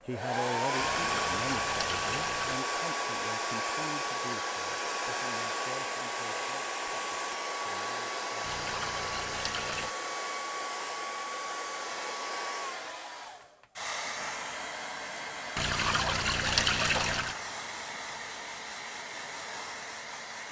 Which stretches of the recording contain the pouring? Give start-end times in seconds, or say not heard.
0.8-2.6, 8.4-9.9, 15.6-17.4.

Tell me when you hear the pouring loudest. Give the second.
17 s.